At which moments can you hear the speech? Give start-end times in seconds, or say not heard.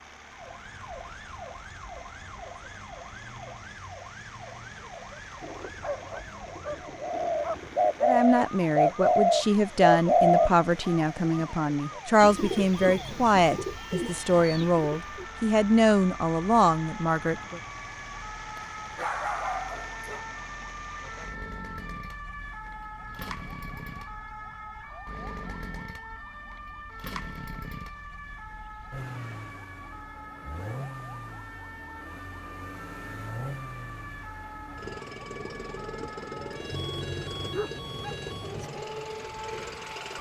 8.0-17.6.